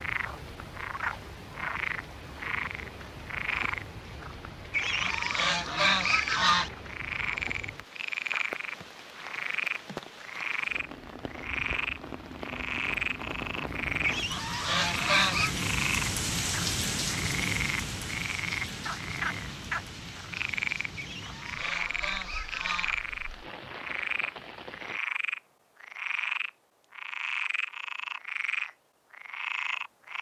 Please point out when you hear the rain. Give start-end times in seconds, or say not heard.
0.0-25.0.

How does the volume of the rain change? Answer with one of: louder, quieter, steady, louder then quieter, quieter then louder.
louder then quieter.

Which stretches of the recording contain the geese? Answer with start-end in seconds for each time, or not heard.
4.7-6.7, 14.0-15.6, 20.9-22.9.